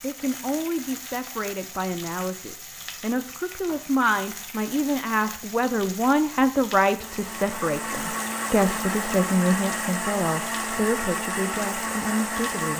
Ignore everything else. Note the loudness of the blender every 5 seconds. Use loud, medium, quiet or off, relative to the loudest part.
off, loud, loud.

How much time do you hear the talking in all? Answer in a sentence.
The talking can be heard for 13 seconds in total.